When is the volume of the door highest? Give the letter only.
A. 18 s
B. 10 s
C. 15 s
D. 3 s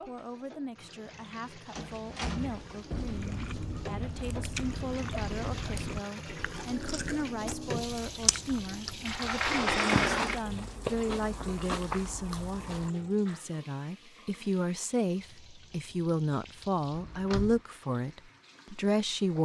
B.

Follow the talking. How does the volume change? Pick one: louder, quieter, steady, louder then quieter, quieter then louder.
louder.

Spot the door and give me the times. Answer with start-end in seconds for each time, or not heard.
1.7-3.2, 9.1-10.4, 16.9-17.6.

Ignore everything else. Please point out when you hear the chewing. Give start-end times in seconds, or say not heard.
3.0-12.9.